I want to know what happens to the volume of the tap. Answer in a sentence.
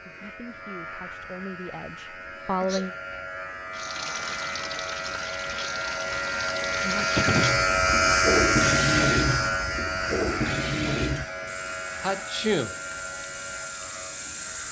The volume of the tap goes up, then down.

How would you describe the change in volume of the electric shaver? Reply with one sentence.
The volume of the electric shaver goes up, then down.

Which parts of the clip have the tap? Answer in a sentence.
You can hear the tap from 3.7 to 14.6 s.